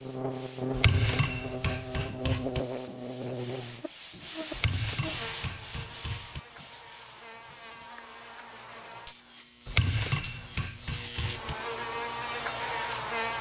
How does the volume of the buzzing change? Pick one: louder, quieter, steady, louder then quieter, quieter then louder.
quieter then louder.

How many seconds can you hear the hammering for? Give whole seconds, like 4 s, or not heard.
6 s.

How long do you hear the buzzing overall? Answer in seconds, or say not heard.
13 s.